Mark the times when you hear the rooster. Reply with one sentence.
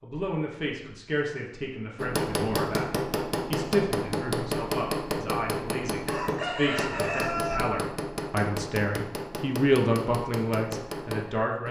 You can hear the rooster from 6.0 to 7.6 s.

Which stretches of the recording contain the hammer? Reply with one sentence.
The hammer can be heard from 1.9 to 11.6 s.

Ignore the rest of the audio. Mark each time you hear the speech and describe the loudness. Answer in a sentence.
The speech can be heard from 0.0 to 11.6 s, getting louder.